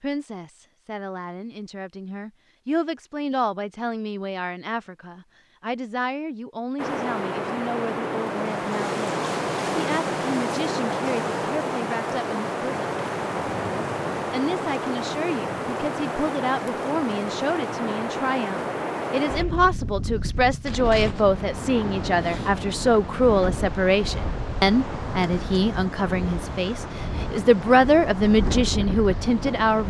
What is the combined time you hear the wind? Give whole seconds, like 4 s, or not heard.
23 s.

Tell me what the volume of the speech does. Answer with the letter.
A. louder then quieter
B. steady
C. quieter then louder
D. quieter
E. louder
E.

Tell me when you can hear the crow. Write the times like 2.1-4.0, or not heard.
not heard.